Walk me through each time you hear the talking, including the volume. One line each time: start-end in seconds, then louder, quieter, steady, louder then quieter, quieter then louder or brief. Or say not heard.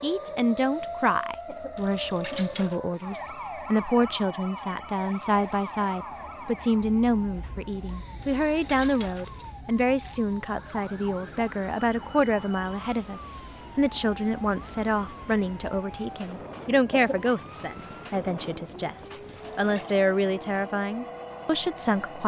0.0-22.2 steady.